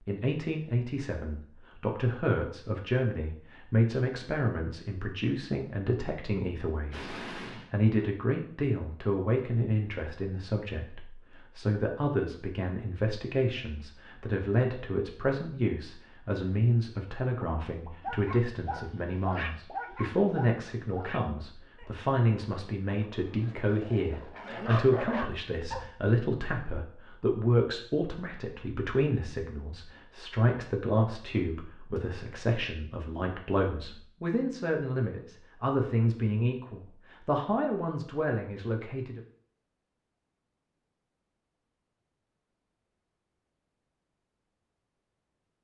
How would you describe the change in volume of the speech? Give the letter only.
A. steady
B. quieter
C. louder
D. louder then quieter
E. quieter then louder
A.